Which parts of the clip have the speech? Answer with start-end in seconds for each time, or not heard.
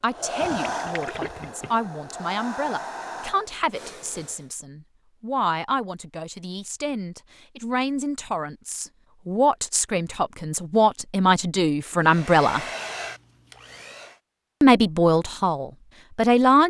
0.0-12.6, 14.6-16.6.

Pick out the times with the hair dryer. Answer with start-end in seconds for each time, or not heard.
0.0-4.5, 12.0-14.2.